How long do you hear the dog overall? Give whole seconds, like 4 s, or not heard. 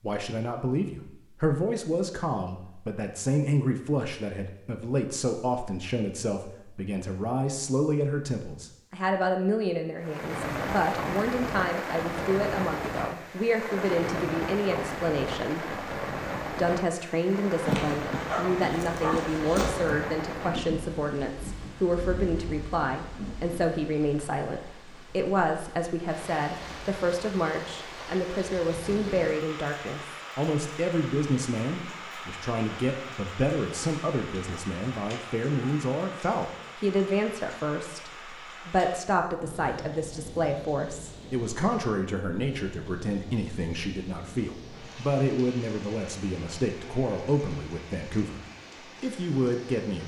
2 s.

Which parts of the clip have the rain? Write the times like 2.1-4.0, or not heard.
10.0-50.0.